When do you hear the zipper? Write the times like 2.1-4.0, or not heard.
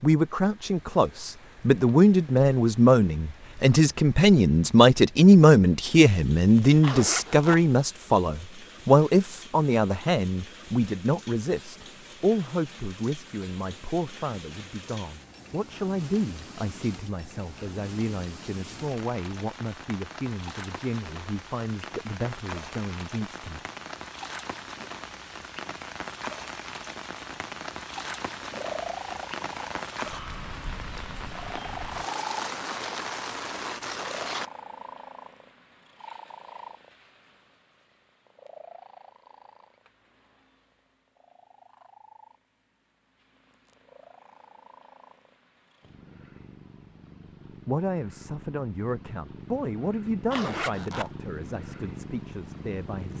6.8-7.6, 50.3-51.1.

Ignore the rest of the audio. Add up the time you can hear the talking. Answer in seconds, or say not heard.
29 s.